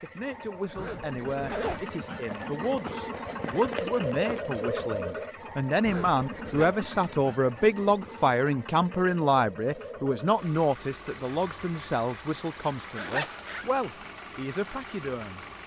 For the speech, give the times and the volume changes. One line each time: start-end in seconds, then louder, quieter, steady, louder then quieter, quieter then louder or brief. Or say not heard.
0.0-15.4 louder then quieter.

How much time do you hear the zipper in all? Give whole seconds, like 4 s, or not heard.
3 s.